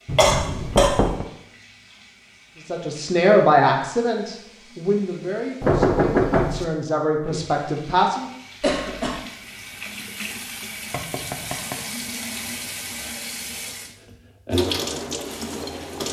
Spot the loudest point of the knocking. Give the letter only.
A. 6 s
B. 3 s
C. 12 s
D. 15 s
A.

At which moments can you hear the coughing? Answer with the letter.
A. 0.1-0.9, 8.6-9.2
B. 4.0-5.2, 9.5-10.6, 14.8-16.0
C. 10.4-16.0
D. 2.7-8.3
A.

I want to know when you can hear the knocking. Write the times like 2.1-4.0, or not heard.
0.1-1.2, 5.6-6.7, 10.9-12.2.